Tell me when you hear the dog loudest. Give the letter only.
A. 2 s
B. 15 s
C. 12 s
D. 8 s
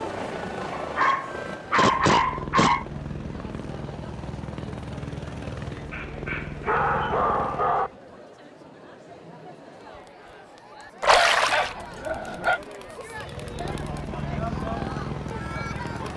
A.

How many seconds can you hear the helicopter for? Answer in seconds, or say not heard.
11 s.